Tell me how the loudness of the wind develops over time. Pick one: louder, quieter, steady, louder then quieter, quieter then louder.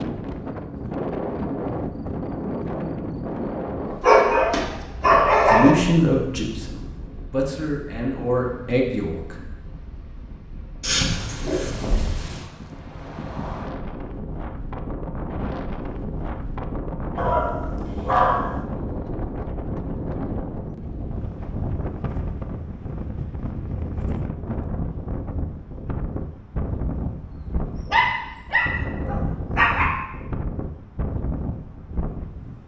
quieter then louder.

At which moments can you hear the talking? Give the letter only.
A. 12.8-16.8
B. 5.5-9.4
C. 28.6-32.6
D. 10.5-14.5
B.